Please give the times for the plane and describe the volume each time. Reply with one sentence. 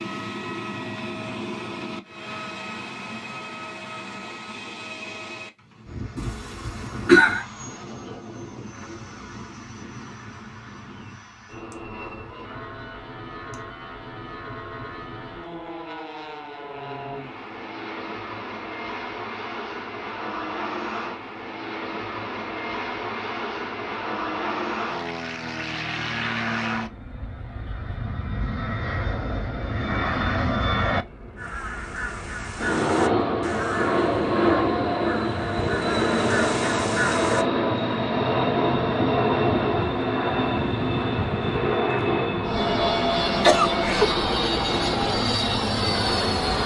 You can hear the plane from 0.0 to 46.6 s, getting louder.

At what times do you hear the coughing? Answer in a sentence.
The coughing can be heard from 6.2 to 7.5 s and from 43.4 to 44.1 s.